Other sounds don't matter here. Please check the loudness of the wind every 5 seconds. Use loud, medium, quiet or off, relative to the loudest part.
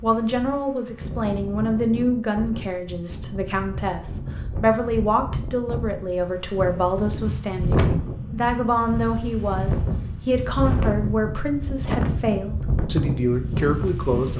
medium, loud, loud.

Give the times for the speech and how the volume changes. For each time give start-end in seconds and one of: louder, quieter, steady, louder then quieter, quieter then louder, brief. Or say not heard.
0.0-14.3 steady.